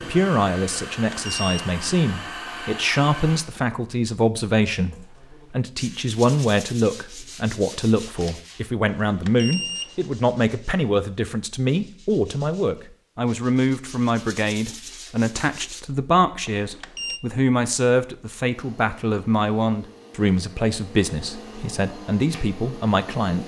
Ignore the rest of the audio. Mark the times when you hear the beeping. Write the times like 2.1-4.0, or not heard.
0.9-1.6, 8.8-10.2, 16.5-17.2.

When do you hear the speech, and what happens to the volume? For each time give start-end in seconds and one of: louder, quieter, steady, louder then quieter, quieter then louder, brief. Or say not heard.
0.1-23.4 steady.